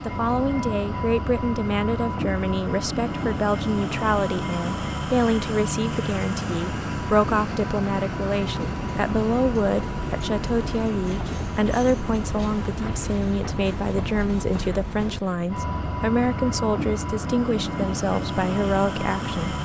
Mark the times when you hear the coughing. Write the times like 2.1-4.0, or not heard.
not heard.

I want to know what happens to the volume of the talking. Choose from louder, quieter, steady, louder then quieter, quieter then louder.
steady.